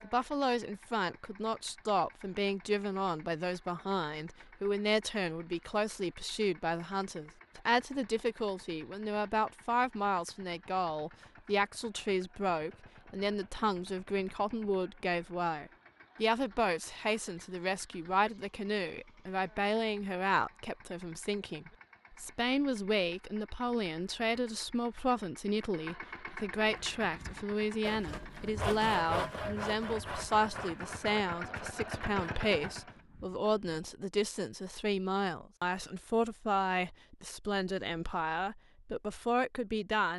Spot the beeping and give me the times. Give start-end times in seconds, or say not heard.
not heard.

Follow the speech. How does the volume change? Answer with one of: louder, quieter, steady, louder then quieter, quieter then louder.
steady.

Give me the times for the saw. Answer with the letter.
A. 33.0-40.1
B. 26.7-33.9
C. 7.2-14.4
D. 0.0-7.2
B.